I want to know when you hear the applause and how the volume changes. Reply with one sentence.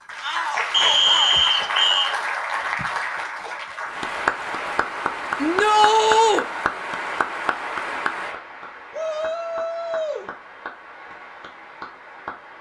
The applause can be heard from 0.1 to 12.5 s, getting quieter.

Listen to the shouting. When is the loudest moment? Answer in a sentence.
The volume of the shouting peaks at 6 seconds.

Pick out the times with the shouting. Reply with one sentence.
You can hear the shouting from 0.2 to 2.1 s, from 5.4 to 6.5 s and from 8.9 to 10.3 s.